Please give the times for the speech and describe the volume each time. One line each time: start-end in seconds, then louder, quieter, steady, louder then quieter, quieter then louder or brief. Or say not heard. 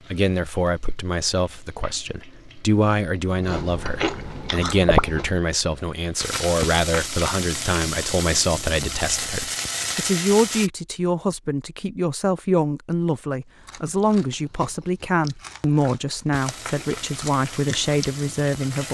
0.1-18.8 steady.